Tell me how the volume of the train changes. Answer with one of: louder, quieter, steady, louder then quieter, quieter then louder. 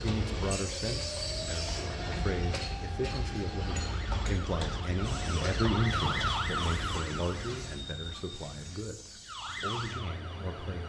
quieter.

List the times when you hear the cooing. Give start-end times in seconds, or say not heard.
not heard.